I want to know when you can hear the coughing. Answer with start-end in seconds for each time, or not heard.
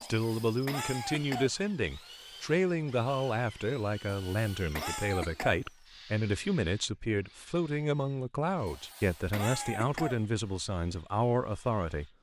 0.0-1.5, 4.1-5.7, 8.7-10.2.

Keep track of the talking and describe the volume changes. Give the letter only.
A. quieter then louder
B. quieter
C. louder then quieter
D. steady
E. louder
D.